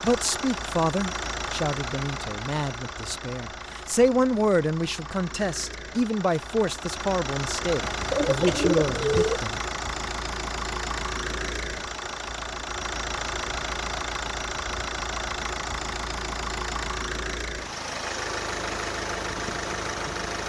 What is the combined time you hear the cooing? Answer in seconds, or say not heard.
2 s.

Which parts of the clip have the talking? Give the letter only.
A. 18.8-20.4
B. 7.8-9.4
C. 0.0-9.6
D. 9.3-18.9
C.